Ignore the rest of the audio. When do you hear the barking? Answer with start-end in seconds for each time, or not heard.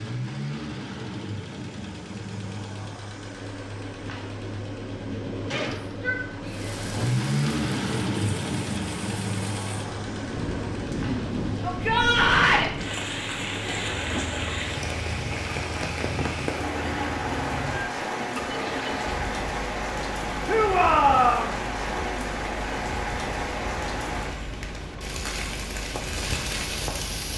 not heard.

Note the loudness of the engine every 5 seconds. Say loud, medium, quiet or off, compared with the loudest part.
medium, loud, medium, medium, medium, medium.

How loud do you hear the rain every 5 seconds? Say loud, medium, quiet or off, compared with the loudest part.
off, medium, loud, loud, loud, loud.